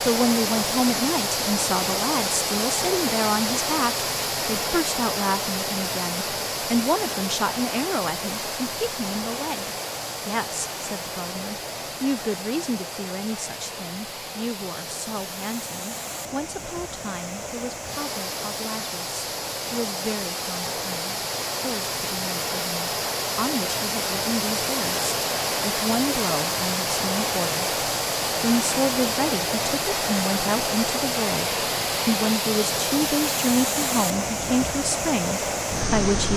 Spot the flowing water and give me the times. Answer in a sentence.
The flowing water can be heard from 0.0 to 36.3 s.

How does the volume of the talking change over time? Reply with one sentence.
The loudness of the talking goes down, then up.